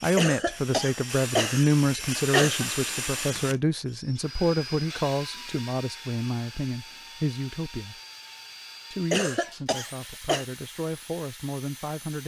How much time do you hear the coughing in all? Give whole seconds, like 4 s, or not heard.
4 s.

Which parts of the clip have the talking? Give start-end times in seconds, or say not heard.
0.0-8.0, 8.9-12.2.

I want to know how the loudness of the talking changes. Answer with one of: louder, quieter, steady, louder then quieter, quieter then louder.
quieter.